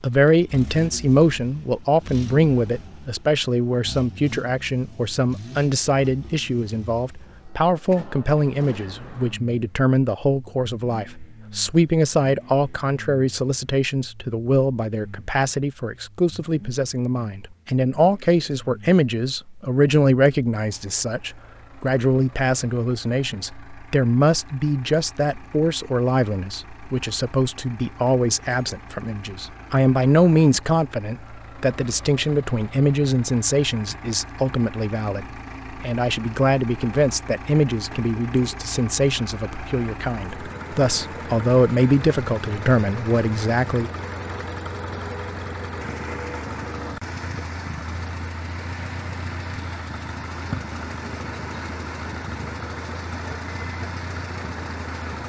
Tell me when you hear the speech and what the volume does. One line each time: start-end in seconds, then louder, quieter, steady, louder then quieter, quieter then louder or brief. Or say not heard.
0.0-43.9 steady.